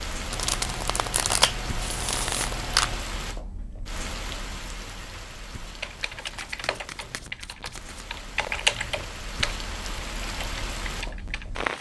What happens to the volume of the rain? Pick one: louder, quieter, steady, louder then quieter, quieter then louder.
quieter then louder.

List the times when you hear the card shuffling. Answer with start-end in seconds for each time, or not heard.
0.3-3.0, 6.2-8.1.